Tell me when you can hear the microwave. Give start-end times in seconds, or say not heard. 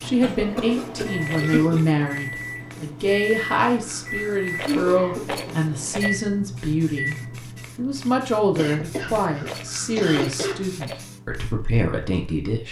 0.0-7.6.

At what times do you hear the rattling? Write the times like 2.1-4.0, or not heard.
1.2-2.1, 4.5-6.2, 9.4-11.1.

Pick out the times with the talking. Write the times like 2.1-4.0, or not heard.
0.0-7.2, 7.8-12.6.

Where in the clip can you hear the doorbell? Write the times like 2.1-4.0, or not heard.
not heard.